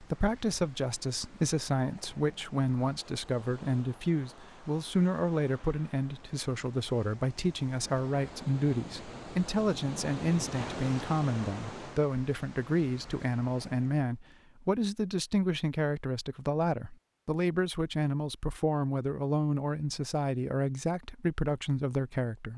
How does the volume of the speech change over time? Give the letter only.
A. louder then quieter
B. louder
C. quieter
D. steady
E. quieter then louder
D.